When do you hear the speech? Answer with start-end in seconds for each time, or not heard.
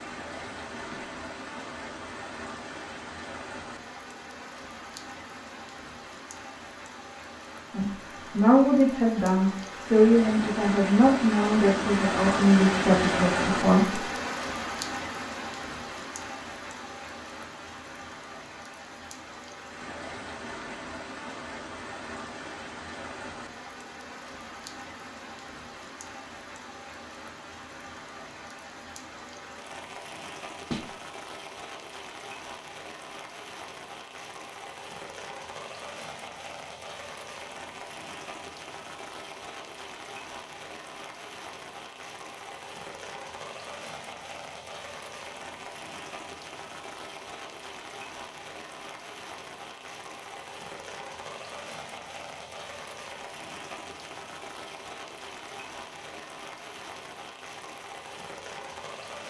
7.7-14.0.